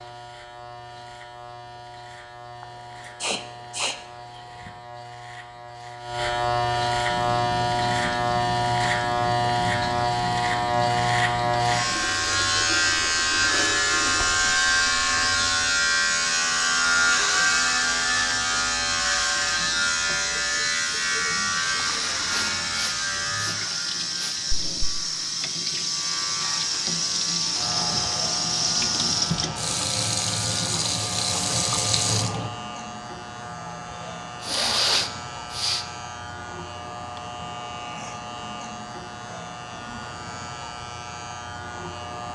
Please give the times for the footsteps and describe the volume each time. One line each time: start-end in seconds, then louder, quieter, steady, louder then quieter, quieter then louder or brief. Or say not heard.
not heard.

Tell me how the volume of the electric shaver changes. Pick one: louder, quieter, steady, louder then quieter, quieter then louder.
louder then quieter.